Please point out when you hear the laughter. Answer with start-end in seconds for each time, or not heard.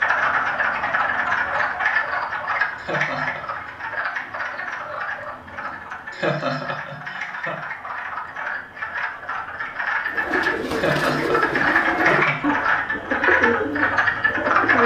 2.8-3.4, 6.1-7.6, 10.7-12.9.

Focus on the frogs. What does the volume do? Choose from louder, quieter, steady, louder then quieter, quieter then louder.
quieter then louder.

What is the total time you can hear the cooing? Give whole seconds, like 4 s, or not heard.
5 s.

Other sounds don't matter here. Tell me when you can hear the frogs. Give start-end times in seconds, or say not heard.
0.0-14.8.